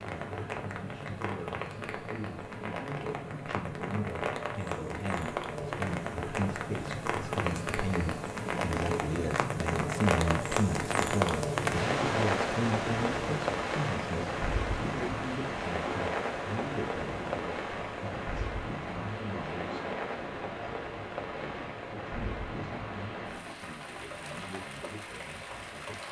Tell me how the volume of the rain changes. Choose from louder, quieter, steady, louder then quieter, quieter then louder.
louder then quieter.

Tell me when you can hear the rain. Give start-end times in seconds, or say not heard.
0.0-26.0.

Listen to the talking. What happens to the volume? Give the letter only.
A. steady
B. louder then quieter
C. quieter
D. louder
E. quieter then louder
B.